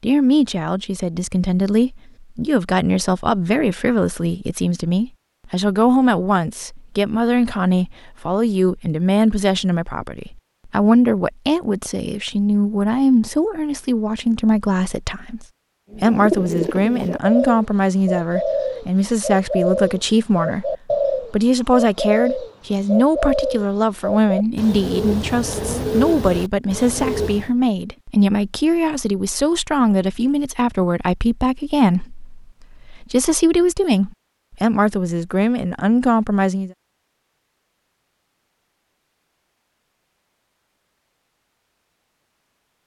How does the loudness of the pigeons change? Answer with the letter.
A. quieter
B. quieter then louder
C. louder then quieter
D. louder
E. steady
E.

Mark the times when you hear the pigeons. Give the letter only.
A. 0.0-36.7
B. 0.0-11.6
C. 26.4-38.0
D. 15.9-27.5
D.